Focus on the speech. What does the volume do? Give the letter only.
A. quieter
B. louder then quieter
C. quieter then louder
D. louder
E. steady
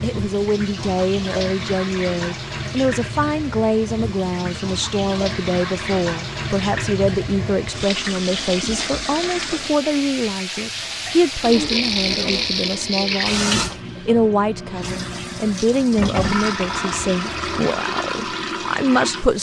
E.